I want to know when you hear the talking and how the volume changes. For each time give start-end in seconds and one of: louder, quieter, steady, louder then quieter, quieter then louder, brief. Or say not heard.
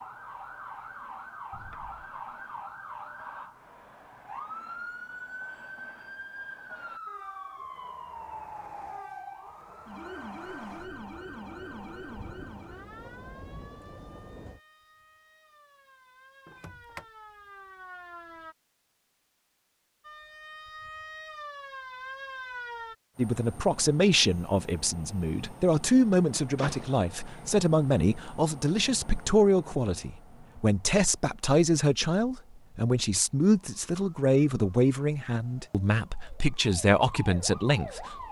23.1-38.2 steady.